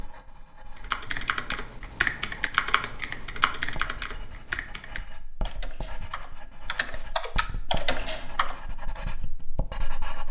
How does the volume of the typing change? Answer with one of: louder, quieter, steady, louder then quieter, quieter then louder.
quieter then louder.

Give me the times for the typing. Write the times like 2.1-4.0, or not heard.
0.8-8.6.